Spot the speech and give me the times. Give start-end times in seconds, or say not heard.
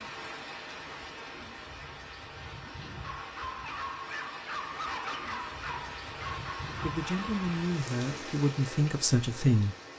6.8-9.8.